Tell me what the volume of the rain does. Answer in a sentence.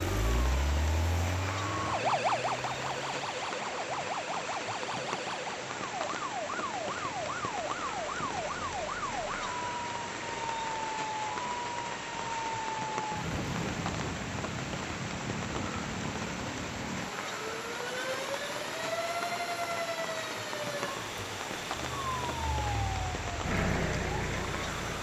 The volume of the rain stays about the same.